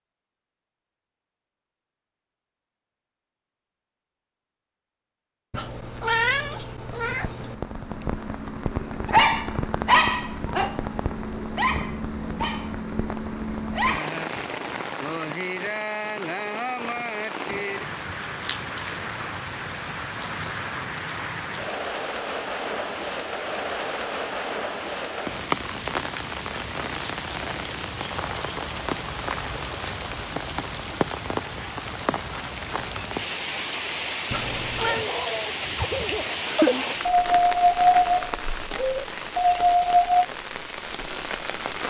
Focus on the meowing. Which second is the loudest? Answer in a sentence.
The volume of the meowing peaks at 6 seconds.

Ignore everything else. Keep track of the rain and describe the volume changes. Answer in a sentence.
The loudness of the rain stays about the same.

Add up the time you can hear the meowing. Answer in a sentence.
You can hear the meowing for 3 seconds altogether.